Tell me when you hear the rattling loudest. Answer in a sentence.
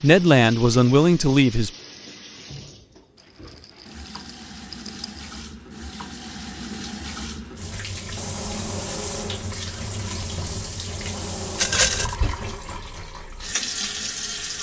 The loudest moment of the rattling is at 12 seconds.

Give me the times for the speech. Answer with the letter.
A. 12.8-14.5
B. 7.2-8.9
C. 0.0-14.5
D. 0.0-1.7
D.